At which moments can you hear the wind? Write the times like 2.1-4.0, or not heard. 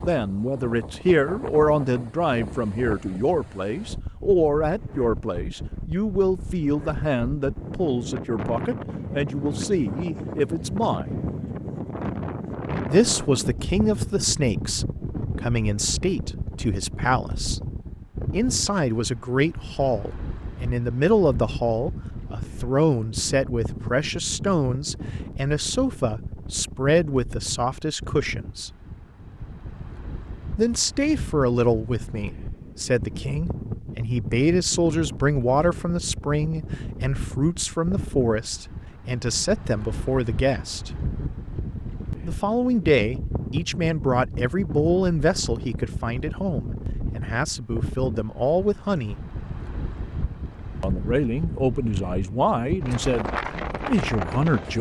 0.0-54.7.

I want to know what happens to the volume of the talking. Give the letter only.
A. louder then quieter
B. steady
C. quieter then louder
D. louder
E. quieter
B.